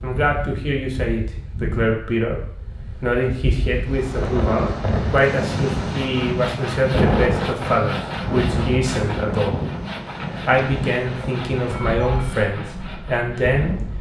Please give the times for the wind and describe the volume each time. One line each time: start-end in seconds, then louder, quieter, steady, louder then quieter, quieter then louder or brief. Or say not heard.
0.0-13.9 louder then quieter.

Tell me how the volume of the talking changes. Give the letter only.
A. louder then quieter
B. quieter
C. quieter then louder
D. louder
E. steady
E.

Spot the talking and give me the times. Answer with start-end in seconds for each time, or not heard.
0.0-9.6, 10.4-13.8.